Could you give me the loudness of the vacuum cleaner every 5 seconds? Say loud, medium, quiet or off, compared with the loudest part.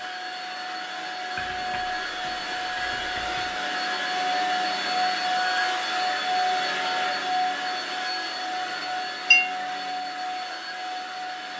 loud, loud, medium.